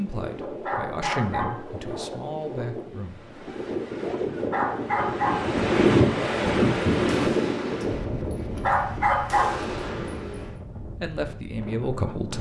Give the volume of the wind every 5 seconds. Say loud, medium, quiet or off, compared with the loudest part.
medium, loud, quiet.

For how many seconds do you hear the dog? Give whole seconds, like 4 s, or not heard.
3 s.